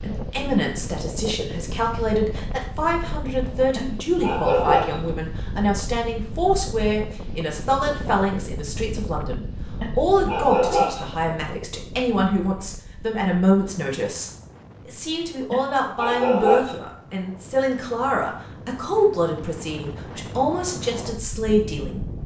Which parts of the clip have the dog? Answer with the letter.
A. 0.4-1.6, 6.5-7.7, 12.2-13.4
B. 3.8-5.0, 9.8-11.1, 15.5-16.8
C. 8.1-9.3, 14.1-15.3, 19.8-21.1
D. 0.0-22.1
B.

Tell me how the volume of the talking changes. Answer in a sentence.
The volume of the talking stays about the same.